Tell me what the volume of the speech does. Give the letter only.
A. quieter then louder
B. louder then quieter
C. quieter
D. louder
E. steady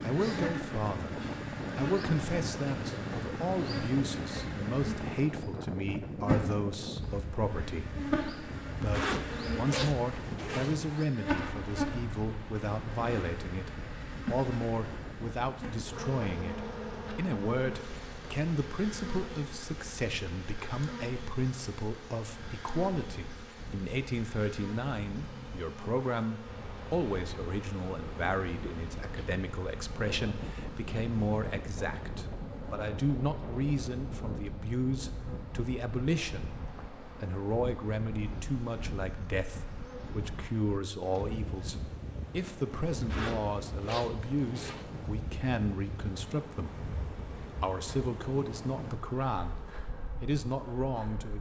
E.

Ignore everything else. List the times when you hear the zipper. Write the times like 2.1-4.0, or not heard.
8.9-10.8, 43.1-44.9.